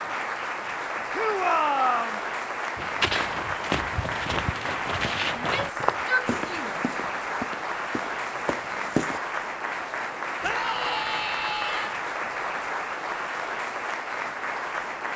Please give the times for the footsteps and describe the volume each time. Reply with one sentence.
The footsteps can be heard from 2.8 to 9.2 s, getting quieter.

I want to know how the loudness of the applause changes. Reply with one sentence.
The volume of the applause stays about the same.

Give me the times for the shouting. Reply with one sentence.
The shouting can be heard from 1.1 to 2.2 s, from 5.3 to 6.8 s and from 10.4 to 11.9 s.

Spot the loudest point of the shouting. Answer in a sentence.
The loudest moment of the shouting is at 2 seconds.